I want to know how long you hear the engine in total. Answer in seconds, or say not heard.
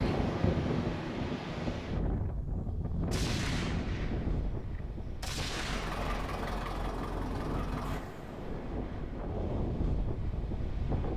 3 s.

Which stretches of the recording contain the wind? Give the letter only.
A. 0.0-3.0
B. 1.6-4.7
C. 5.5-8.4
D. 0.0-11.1
D.